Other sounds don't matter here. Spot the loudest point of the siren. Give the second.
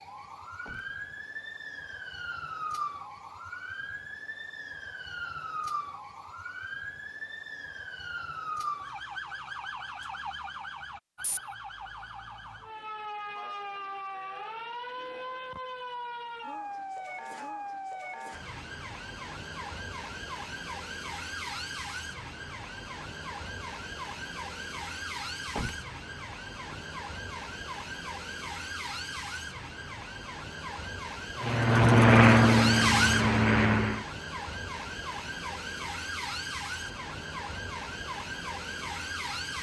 33 s.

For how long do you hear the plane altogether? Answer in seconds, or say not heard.
3 s.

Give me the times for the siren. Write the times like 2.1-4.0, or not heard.
0.0-39.5.